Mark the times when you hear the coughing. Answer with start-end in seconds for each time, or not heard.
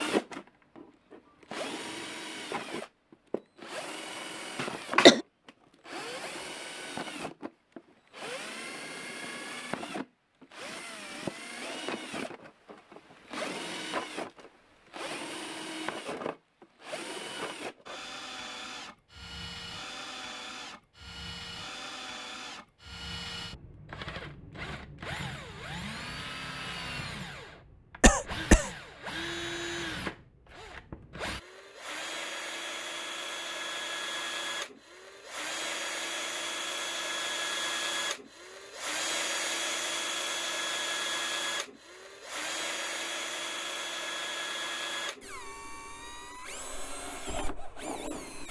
4.6-5.2, 28.0-28.7.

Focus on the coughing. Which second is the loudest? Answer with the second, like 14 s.
5 s.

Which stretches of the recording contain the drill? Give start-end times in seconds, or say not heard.
0.0-48.4.